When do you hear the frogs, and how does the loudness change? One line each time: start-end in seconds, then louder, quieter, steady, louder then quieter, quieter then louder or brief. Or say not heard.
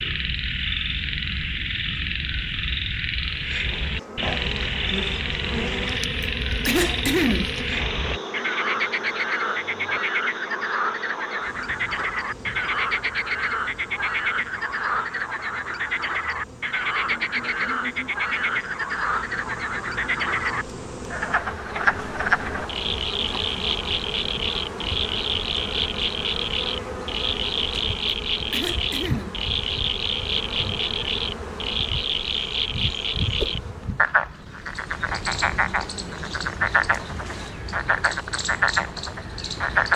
0.0-39.9 steady.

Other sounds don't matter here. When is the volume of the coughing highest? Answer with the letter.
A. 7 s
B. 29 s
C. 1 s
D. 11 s
A.